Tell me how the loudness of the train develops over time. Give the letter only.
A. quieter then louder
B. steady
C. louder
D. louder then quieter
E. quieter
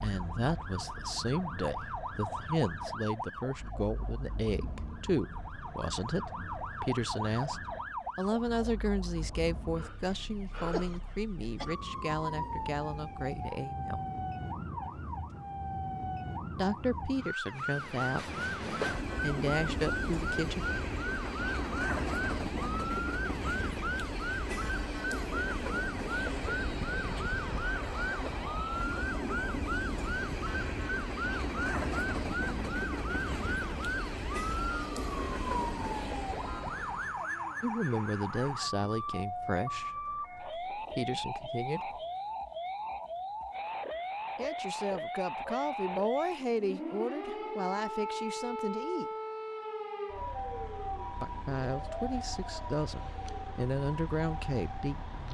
B.